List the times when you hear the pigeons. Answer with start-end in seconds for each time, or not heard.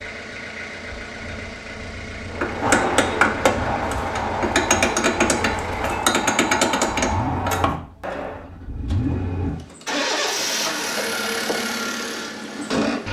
not heard.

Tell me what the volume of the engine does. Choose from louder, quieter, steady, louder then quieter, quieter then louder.
louder.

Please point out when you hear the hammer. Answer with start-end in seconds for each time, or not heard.
2.3-8.4.